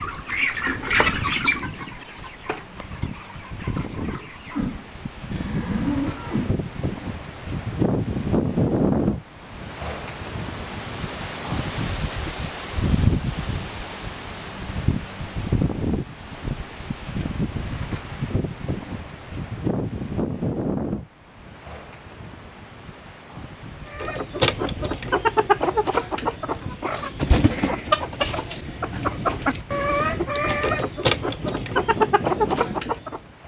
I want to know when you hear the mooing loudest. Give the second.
6 s.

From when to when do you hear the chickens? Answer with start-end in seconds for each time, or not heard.
0.0-4.8, 23.9-33.2.